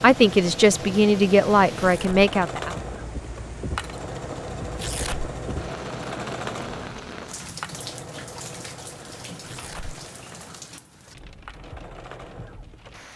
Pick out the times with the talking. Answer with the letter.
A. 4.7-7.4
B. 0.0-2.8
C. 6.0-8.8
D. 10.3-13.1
B.